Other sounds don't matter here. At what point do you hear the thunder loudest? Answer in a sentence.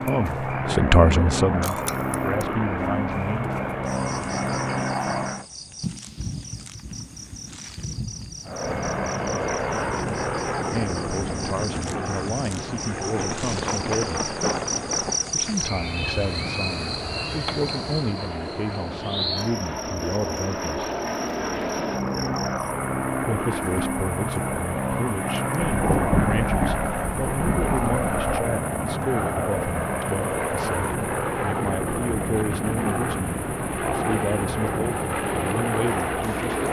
The volume of the thunder peaks at 26 seconds.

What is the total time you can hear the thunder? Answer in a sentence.
The thunder can be heard for 8 seconds in total.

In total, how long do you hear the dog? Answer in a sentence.
The dog can't be heard in this clip.